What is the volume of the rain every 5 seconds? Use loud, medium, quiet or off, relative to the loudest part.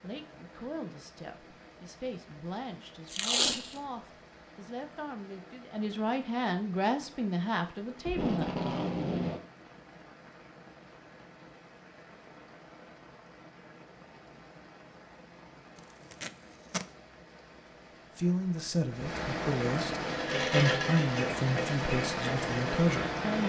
quiet, quiet, quiet, medium, loud.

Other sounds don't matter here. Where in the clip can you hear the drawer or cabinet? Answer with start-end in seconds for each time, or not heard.
not heard.